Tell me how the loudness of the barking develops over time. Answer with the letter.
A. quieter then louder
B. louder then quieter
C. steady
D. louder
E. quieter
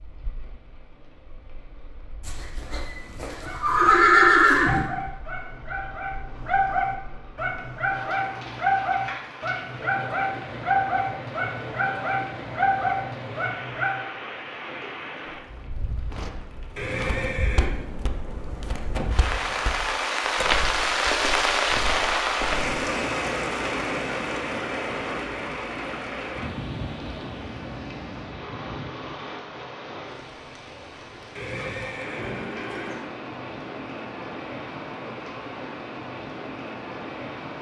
D.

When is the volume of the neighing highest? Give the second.
4 s.